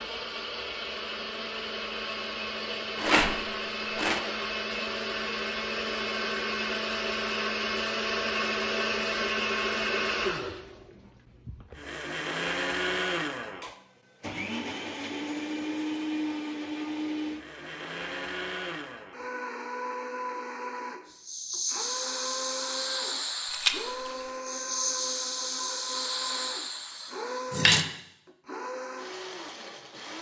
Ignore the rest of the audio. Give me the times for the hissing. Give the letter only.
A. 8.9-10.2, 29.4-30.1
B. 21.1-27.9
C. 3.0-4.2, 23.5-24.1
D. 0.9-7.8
B.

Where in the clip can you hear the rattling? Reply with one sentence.
You can hear the rattling from 3.0 to 4.2 s and from 23.5 to 24.1 s.